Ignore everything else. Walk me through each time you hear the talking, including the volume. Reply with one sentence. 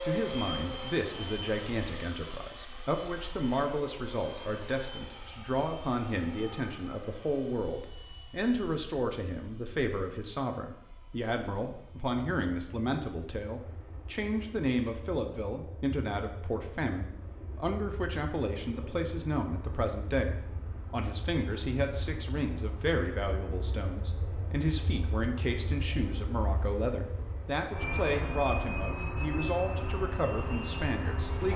You can hear the talking from 0.0 to 31.5 s, at a steady volume.